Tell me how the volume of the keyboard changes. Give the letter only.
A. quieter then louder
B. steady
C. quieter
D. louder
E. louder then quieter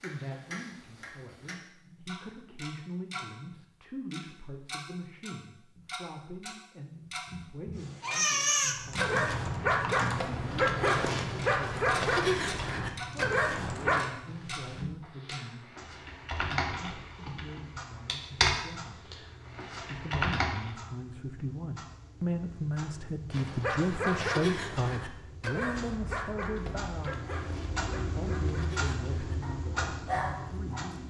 A.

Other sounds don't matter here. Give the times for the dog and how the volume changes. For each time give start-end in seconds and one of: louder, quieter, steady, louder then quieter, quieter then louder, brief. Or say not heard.
8.0-14.1 steady
23.3-30.9 quieter then louder.